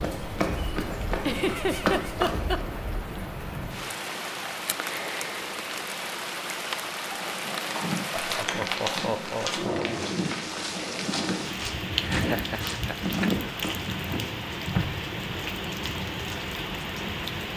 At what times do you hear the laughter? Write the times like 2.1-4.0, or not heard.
1.2-2.6, 8.1-9.9, 11.9-13.3.